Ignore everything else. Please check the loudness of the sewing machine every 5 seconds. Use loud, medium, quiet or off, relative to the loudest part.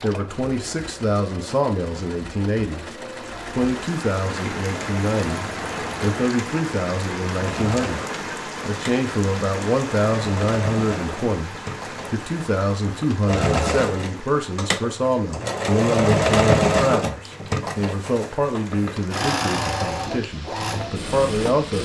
quiet, medium, medium, loud, medium.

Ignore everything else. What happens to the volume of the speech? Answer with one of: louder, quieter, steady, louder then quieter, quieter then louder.
steady.